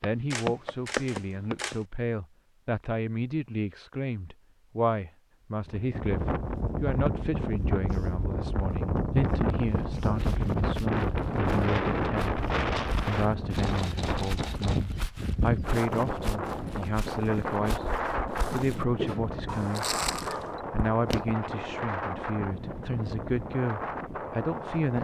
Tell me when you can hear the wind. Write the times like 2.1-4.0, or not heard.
5.7-24.9.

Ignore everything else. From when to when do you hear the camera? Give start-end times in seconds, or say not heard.
0.3-1.9, 13.6-14.8, 19.4-20.6.